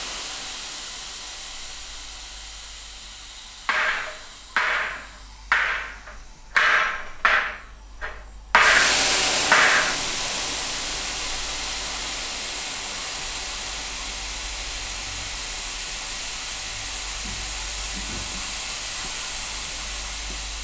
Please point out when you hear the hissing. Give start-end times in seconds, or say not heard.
0.0-20.6.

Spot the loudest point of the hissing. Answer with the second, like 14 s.
9 s.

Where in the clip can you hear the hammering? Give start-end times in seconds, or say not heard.
3.6-9.9.